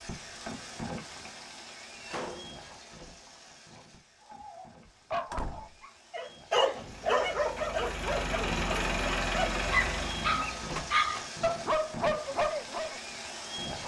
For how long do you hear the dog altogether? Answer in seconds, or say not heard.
9 s.